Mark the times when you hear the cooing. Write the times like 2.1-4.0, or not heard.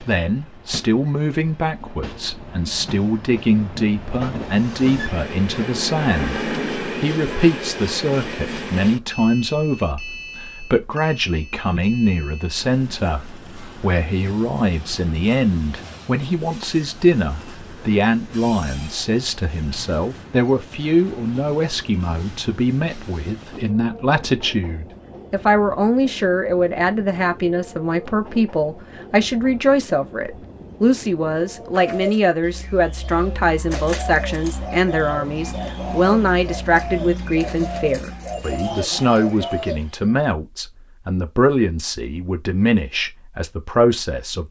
31.6-40.1.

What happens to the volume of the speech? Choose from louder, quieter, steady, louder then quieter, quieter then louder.
steady.